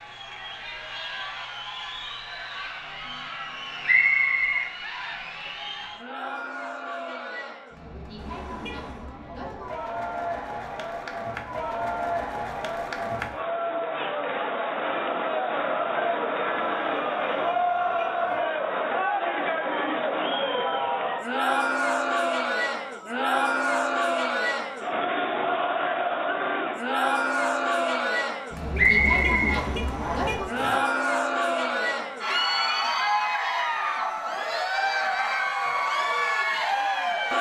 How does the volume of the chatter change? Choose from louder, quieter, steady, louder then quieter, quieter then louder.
louder.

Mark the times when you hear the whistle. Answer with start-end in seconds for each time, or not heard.
3.9-4.7, 28.8-30.3.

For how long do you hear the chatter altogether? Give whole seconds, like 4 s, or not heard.
37 s.